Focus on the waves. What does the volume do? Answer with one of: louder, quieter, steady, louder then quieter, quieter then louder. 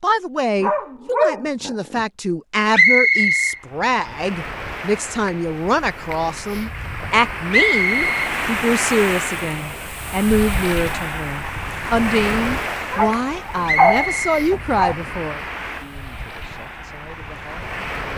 louder then quieter.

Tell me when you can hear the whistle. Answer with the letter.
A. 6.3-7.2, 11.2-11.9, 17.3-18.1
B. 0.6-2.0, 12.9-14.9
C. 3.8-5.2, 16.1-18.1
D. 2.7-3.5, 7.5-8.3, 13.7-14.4
D.